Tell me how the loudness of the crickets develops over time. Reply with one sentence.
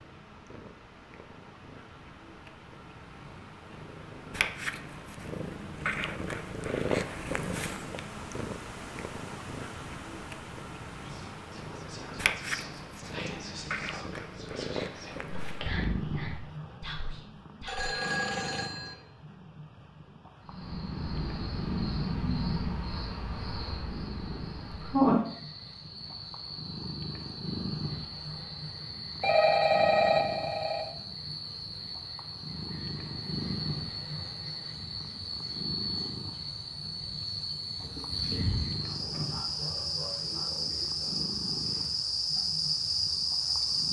The volume of the crickets goes down, then up.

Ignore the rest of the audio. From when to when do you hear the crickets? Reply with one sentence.
You can hear the crickets from 20.4 to 43.8 s.